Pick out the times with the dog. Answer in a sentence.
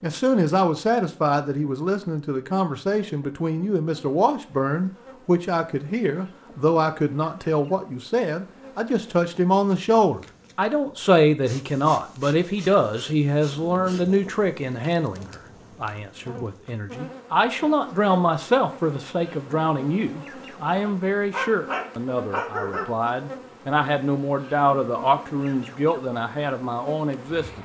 You can hear the dog from 20.9 to 22.9 s.